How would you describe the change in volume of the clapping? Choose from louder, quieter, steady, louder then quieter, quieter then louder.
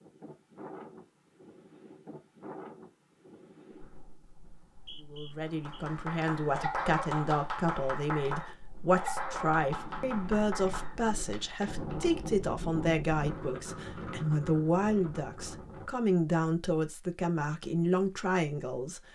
quieter.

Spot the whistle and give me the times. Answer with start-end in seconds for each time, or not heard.
4.5-5.8.